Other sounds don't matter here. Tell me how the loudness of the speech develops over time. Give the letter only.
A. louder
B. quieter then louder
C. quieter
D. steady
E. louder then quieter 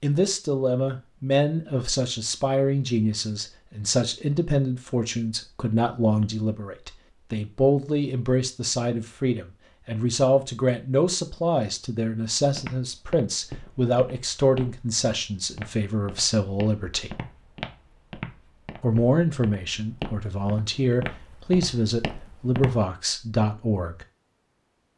D.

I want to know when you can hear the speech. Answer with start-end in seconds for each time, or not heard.
0.0-17.1, 18.8-24.1.